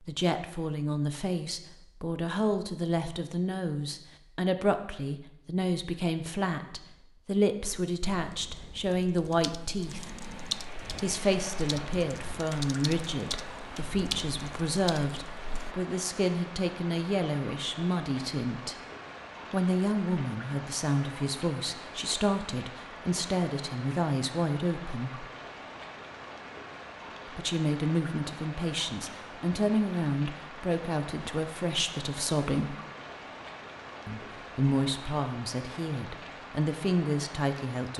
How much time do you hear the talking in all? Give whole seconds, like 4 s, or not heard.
33 s.